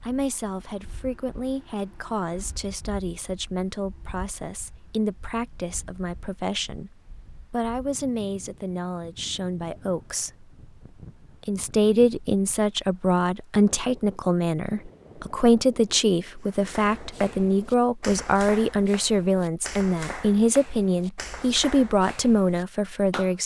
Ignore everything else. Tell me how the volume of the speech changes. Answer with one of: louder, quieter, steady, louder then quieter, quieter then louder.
louder.